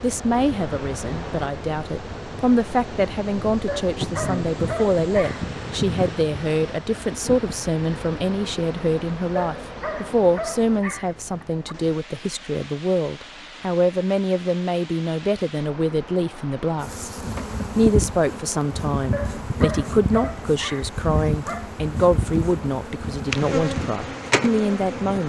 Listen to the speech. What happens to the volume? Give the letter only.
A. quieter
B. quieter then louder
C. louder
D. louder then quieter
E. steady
E.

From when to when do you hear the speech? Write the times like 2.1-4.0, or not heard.
0.0-25.2.